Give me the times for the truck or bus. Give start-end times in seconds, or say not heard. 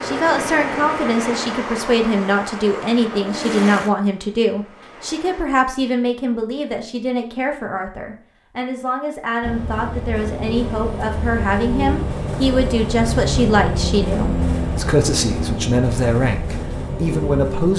0.0-5.5, 9.4-17.7.